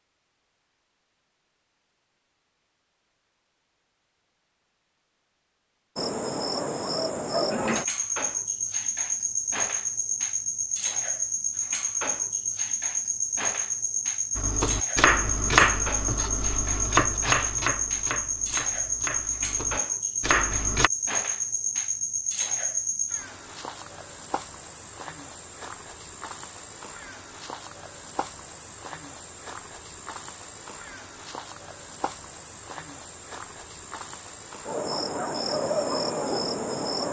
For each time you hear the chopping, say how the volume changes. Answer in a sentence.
You can hear the chopping from 14.3 to 20.9 s, getting quieter then louder.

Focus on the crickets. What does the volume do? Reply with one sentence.
The loudness of the crickets goes down, then up.